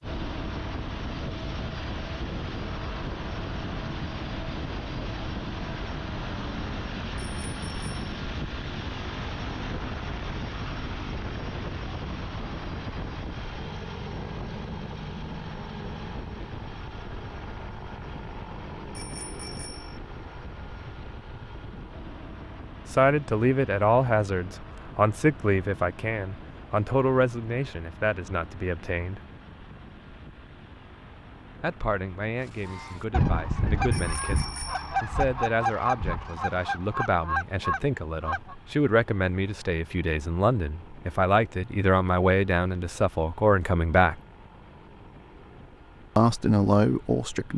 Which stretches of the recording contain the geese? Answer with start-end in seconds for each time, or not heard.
32.6-38.5.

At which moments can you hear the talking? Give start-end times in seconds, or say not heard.
22.9-29.2, 31.6-44.1, 46.1-47.5.